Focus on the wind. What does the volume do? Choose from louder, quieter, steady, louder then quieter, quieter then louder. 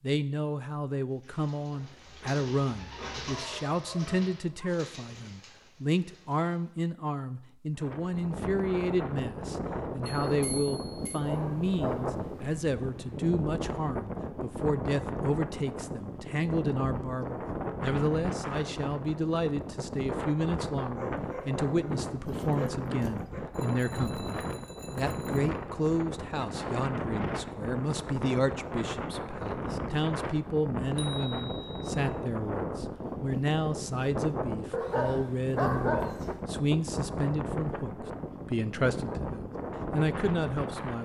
steady.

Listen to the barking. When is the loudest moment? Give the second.
36 s.